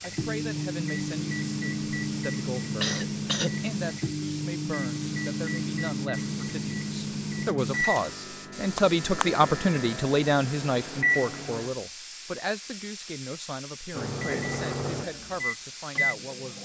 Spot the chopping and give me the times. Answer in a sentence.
You can't hear the chopping here.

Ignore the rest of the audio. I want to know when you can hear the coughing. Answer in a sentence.
You can hear the coughing from 2.8 to 3.5 s.